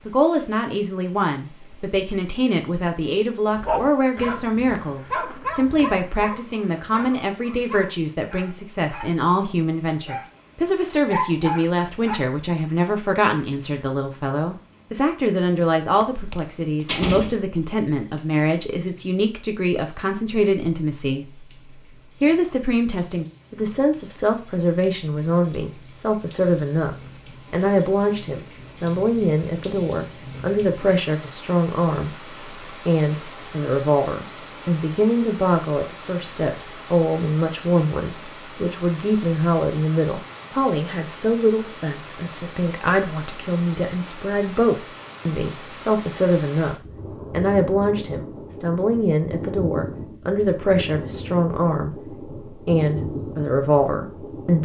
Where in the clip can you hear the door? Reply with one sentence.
You can hear the door from 16.0 to 17.4 s.